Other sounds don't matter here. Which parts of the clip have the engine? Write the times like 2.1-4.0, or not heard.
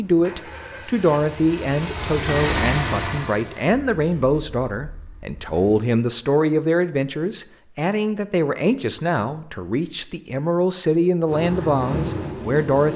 0.0-5.8, 11.2-12.9.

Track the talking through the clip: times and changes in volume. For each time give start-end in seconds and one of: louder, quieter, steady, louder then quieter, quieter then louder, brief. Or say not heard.
0.0-12.9 steady.